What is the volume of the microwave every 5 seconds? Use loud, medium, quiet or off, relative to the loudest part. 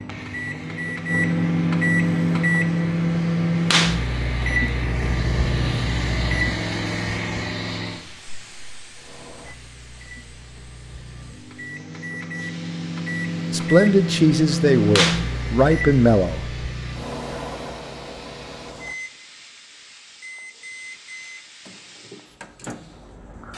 loud, medium, medium, medium, quiet.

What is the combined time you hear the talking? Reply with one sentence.
The talking can be heard for 3 seconds in total.